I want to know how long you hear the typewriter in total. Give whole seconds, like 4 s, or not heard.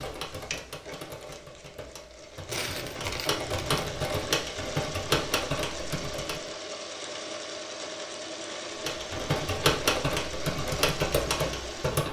10 s.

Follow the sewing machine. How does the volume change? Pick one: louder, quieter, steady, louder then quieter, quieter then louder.
louder.